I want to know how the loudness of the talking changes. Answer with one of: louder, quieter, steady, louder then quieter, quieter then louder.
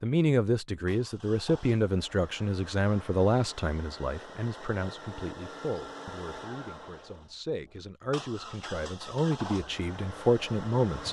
quieter then louder.